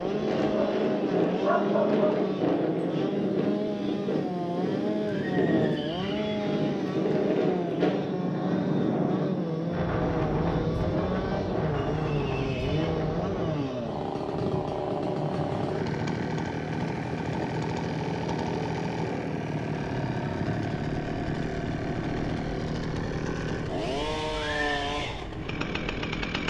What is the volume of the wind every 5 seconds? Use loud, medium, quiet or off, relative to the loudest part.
loud, loud, loud, medium, medium, medium.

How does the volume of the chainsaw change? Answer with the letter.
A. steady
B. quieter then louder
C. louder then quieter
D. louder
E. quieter
A.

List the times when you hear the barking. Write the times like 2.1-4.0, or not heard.
0.4-2.4.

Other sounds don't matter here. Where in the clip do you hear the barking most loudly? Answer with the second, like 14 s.
2 s.